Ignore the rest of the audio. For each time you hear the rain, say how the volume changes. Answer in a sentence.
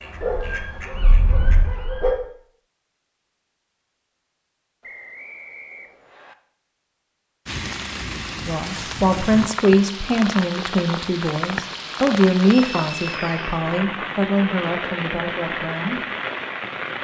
You can hear the rain from 7.5 to 16.9 s, at a steady volume.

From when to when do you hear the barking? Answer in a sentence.
The barking can be heard from 0.2 to 2.1 s.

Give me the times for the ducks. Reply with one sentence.
You can hear the ducks from 0.0 to 1.8 s.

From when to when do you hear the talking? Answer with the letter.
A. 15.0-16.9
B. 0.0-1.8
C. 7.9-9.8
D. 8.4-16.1
D.